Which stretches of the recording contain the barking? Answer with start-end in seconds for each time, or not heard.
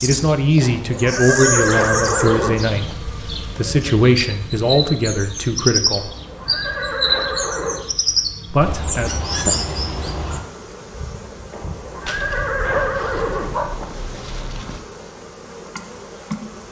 12.1-14.8.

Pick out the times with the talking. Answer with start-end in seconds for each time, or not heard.
0.0-6.1, 8.5-9.1.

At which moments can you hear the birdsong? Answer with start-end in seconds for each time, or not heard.
0.0-10.4.